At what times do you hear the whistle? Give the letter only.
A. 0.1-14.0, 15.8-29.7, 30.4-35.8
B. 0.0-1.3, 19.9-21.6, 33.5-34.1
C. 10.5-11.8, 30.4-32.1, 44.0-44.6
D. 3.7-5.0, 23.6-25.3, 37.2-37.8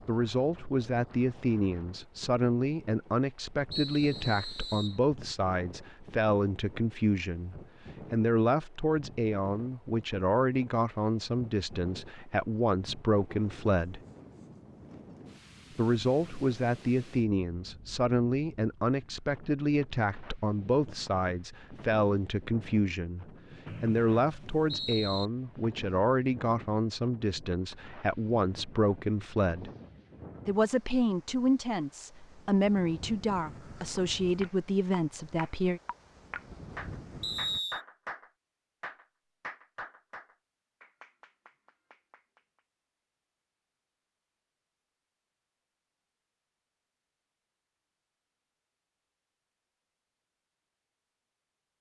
D.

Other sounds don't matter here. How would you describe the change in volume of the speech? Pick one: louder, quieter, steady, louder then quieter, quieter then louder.
steady.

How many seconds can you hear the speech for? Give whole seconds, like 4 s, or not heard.
33 s.